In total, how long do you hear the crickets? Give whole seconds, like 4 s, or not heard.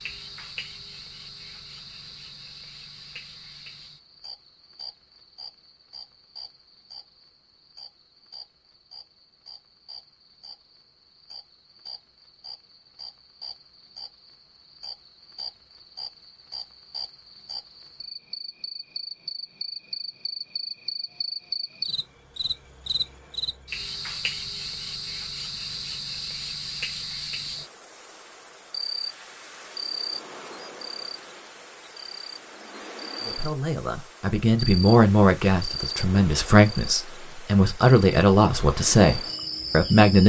40 s.